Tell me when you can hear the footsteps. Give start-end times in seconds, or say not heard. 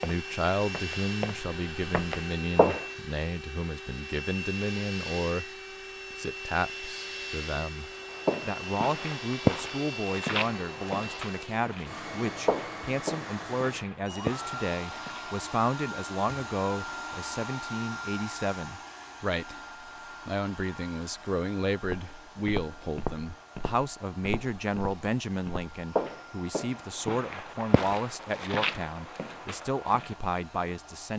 0.0-2.9, 8.2-15.2, 21.8-30.1.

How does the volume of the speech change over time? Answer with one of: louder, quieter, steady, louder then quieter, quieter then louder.
steady.